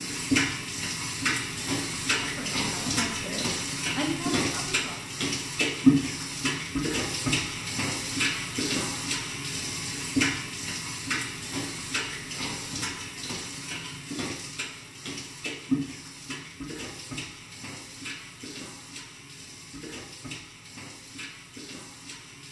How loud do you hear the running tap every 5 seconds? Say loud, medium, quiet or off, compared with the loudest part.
loud, loud, medium, medium, quiet.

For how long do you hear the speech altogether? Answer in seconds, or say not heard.
3 s.